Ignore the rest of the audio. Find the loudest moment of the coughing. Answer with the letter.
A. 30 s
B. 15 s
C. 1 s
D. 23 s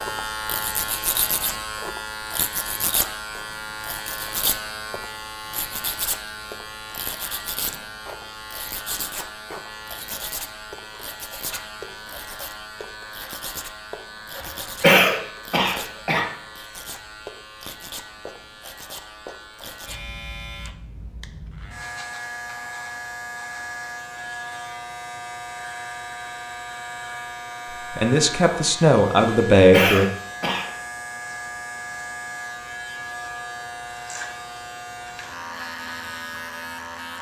B.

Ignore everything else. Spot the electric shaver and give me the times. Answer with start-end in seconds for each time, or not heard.
0.0-37.1.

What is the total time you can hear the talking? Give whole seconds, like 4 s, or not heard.
2 s.